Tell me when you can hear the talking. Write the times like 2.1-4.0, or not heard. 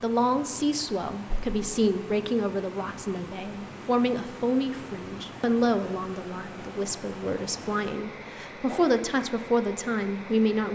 0.0-10.7.